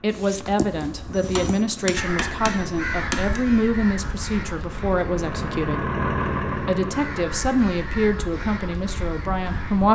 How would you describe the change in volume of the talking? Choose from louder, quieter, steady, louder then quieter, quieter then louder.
steady.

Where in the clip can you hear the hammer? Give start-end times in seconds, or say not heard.
1.1-3.4.